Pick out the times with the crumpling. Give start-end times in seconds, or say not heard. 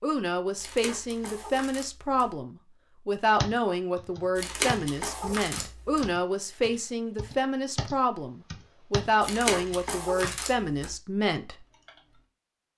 0.6-2.3, 4.3-6.1, 9.2-10.9.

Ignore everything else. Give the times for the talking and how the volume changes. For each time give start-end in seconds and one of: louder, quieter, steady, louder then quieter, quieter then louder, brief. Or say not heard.
0.0-11.6 steady.